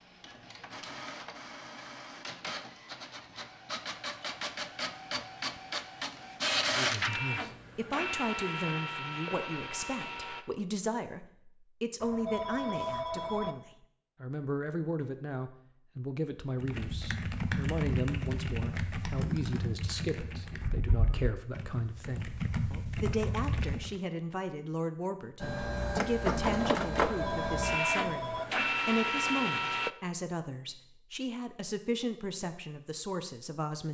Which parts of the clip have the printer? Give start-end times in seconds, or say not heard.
0.0-10.4, 25.4-29.9.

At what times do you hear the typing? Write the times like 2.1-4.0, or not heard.
16.6-24.0.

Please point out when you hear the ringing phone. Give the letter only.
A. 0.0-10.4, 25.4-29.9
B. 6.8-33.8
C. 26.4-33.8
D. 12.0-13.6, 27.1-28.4
D.